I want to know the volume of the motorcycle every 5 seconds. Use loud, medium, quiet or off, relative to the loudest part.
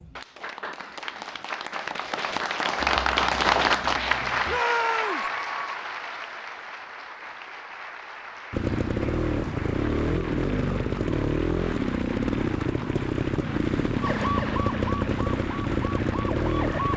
off, loud, loud, loud.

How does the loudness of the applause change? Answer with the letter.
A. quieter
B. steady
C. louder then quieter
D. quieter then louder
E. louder
A.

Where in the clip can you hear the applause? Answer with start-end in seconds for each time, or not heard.
0.0-16.9.